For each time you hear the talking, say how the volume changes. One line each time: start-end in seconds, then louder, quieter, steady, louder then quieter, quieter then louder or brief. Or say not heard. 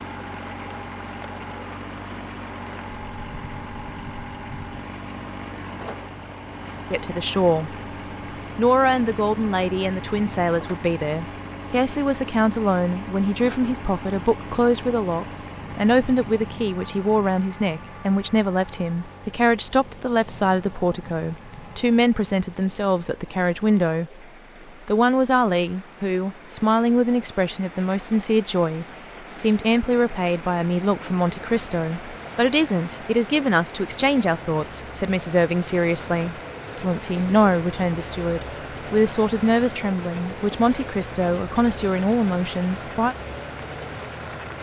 6.9-7.8 brief
8.6-24.2 steady
24.9-43.1 steady.